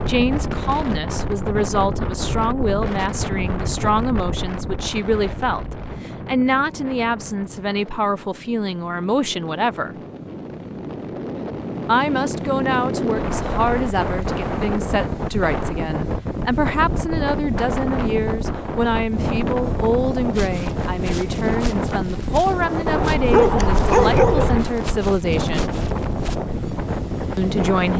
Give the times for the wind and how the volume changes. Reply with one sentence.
The wind can be heard from 0.0 to 27.9 s, getting quieter then louder.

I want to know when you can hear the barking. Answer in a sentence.
You can hear the barking from 22.9 to 24.6 s.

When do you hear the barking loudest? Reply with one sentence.
The volume of the barking peaks at 24 seconds.